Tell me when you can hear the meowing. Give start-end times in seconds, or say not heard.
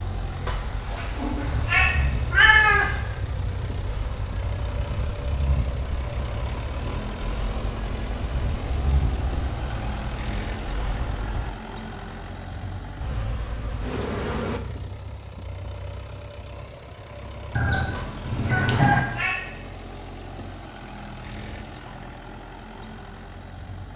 0.5-2.9, 17.9-19.4.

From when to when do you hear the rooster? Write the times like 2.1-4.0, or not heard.
17.6-19.0.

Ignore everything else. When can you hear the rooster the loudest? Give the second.
19 s.